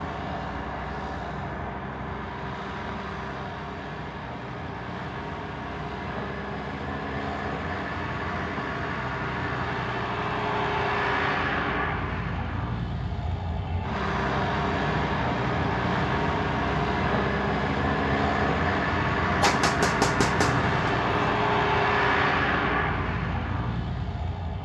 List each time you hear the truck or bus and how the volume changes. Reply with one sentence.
The truck or bus can be heard from 0.0 to 24.5 s, getting louder.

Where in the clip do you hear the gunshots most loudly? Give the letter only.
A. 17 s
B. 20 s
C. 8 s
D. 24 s
B.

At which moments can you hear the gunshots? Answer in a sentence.
The gunshots can be heard from 19.4 to 21.4 s.